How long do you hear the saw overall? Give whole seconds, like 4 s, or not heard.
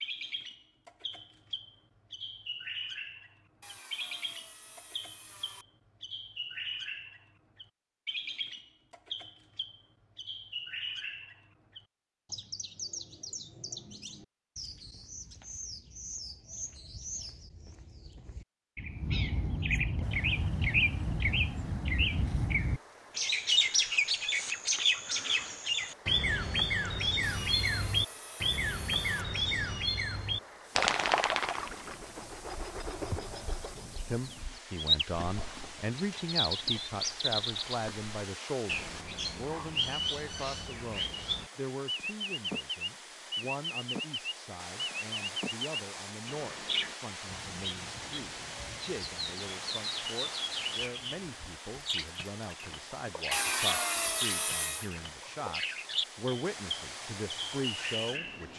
6 s.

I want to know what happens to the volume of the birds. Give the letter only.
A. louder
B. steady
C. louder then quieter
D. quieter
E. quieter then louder
C.